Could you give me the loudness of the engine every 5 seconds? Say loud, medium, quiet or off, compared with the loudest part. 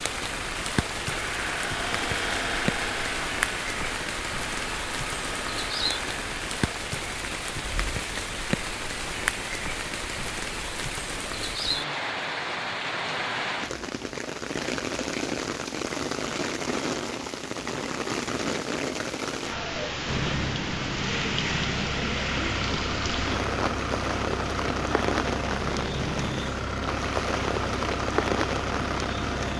loud, medium, off, off, loud, loud.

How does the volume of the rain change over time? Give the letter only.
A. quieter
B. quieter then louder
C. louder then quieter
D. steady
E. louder
D.